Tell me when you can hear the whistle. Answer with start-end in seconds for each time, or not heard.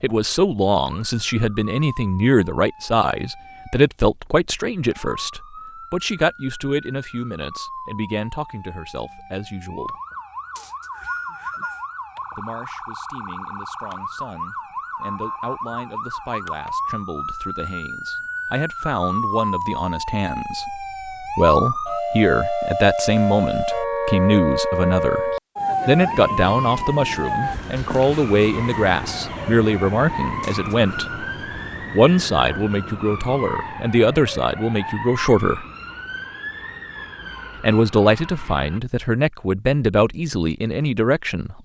10.6-11.9, 30.4-31.2.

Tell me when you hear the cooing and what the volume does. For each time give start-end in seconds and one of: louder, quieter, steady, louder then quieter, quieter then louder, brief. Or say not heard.
not heard.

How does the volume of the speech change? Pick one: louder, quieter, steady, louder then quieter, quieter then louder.
quieter then louder.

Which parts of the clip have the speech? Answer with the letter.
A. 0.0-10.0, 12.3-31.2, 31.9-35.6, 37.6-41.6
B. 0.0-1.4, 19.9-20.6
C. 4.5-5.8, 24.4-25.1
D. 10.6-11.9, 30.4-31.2
A.